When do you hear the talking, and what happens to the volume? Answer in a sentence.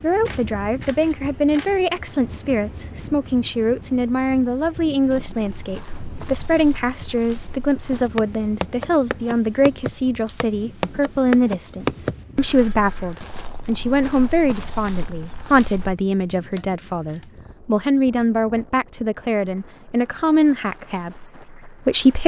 The talking can be heard from 0.0 to 22.2 s, at a steady volume.